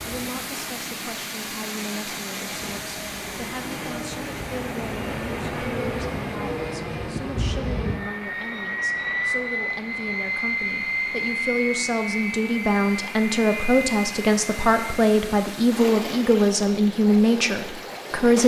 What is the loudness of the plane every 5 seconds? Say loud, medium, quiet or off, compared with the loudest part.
medium, loud, loud, off.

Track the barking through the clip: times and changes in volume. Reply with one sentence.
The barking can't be heard in this clip.